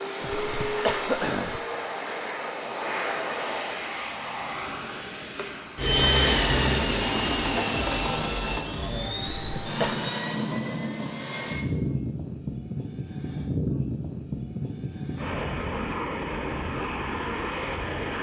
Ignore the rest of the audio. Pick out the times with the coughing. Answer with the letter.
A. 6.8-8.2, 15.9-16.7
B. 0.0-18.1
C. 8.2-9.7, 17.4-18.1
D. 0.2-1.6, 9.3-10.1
D.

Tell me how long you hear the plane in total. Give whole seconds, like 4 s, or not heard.
18 s.